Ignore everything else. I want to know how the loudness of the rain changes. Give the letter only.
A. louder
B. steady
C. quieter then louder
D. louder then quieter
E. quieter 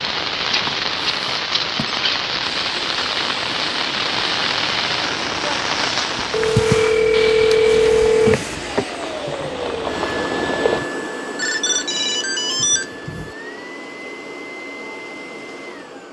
E.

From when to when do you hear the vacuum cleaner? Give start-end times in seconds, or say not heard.
2.5-16.0.